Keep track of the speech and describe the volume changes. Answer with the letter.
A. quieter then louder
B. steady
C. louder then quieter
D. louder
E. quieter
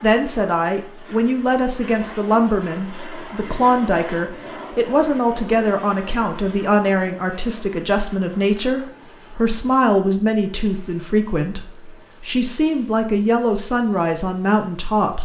B.